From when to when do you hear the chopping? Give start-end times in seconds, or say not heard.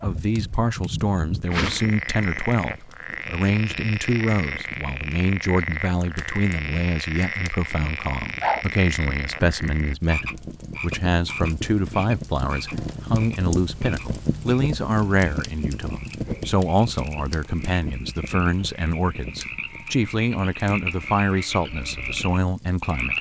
not heard.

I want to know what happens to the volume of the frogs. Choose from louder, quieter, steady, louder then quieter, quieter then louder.
quieter then louder.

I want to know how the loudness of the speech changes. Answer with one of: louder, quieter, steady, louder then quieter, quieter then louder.
steady.